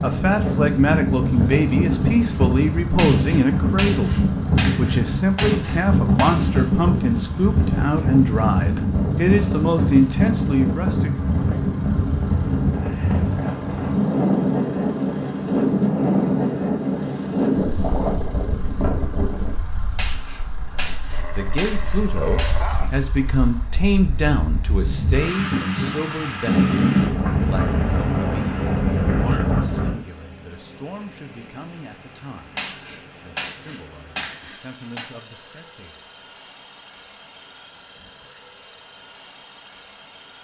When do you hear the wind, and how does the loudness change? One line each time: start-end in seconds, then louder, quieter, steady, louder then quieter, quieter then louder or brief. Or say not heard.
0.0-30.0 quieter then louder.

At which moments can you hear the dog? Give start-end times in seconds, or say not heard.
21.1-23.1.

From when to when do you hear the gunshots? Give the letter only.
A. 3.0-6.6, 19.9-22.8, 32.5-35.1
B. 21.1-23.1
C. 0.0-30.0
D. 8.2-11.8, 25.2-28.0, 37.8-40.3
A.